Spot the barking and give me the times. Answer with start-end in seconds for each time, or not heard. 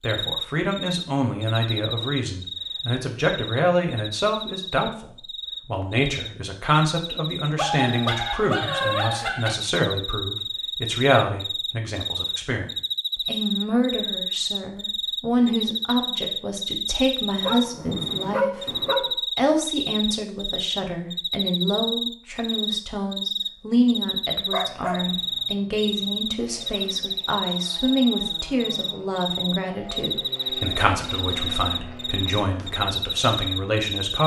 7.5-9.6, 17.4-19.1, 24.5-25.0.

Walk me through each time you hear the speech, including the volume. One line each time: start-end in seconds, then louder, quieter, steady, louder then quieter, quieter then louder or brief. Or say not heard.
0.0-34.2 steady.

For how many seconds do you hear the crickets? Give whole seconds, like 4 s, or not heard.
34 s.